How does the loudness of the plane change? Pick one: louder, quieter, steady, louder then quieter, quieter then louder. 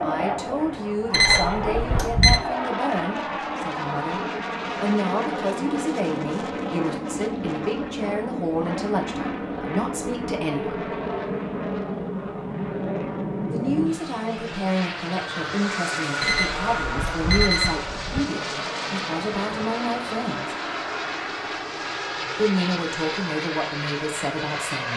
steady.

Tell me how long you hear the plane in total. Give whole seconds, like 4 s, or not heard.
25 s.